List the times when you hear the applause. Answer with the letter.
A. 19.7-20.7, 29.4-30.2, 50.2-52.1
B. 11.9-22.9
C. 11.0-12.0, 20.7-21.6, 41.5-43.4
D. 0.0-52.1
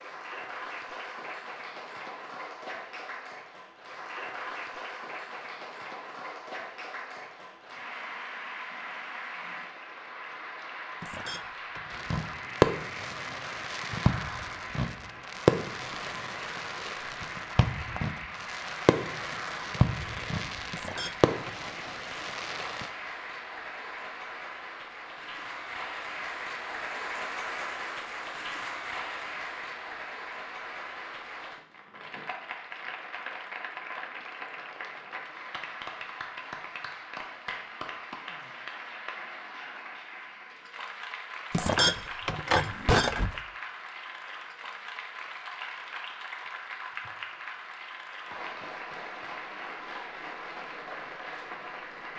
D.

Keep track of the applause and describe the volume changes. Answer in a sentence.
The loudness of the applause stays about the same.